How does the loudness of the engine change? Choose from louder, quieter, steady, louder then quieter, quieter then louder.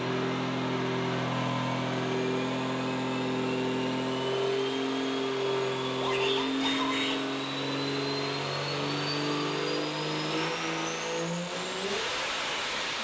steady.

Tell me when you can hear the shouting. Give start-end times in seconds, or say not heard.
6.0-7.2.